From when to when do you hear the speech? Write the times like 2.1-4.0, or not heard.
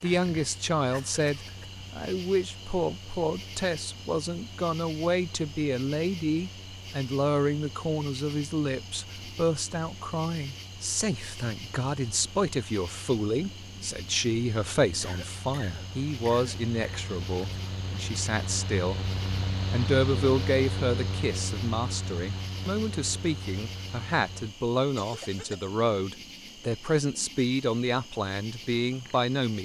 0.0-19.0, 19.7-29.6.